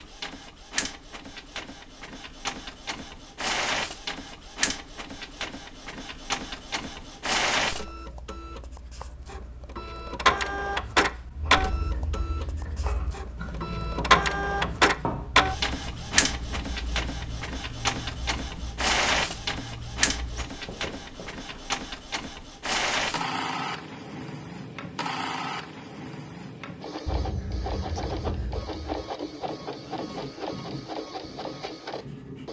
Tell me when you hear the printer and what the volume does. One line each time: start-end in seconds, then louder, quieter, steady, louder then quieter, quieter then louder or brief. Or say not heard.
0.0-32.4 louder then quieter.